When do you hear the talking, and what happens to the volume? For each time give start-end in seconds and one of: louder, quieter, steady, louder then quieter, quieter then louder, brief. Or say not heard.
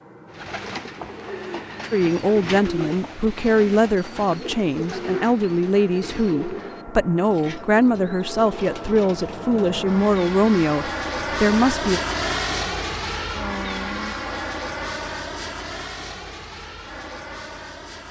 1.9-12.0 steady.